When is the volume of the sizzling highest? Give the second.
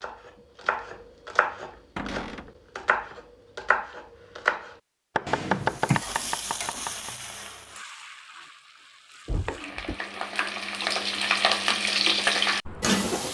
12 s.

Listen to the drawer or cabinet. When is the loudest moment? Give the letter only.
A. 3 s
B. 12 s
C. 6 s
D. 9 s
C.